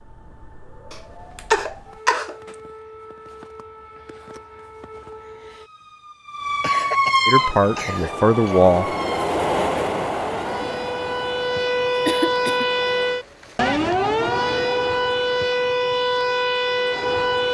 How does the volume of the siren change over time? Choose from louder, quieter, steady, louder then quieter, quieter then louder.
louder.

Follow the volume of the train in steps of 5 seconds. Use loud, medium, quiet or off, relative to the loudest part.
off, loud, medium, off.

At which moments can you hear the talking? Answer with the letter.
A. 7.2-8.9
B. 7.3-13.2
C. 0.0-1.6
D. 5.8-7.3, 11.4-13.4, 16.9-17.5
A.